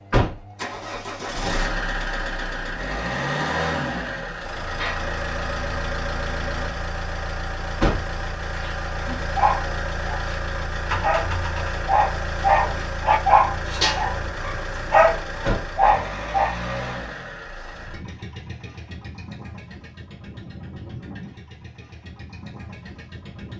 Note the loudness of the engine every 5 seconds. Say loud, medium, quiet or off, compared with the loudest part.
loud, loud, loud, medium, quiet.